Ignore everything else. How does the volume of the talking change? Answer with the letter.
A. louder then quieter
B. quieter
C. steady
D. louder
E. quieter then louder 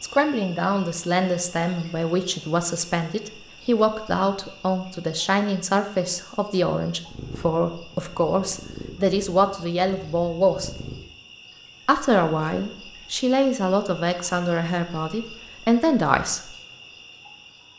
C.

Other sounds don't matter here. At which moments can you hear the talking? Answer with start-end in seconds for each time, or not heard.
0.0-10.7, 11.8-16.6.